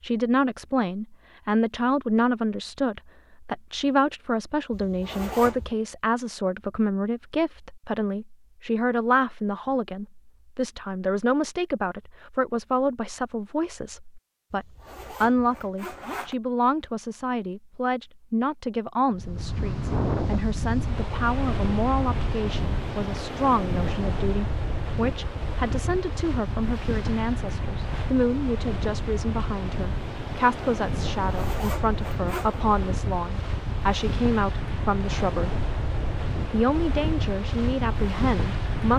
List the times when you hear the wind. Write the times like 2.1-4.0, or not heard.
19.1-38.9.